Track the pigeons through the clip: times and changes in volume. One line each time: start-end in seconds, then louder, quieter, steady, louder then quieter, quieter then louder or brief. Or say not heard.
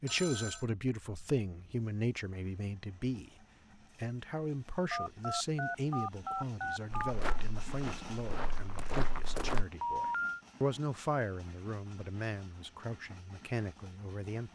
not heard.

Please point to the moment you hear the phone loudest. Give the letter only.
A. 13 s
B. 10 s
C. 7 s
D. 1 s
B.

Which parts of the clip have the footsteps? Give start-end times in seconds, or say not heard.
6.9-9.7.